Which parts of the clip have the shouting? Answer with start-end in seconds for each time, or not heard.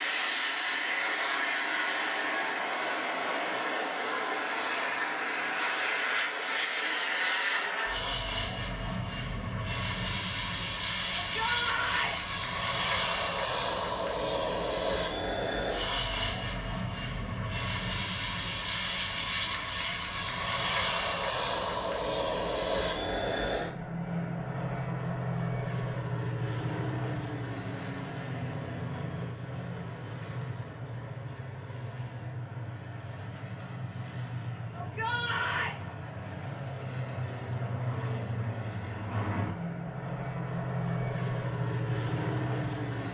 11.2-12.2, 34.7-35.8.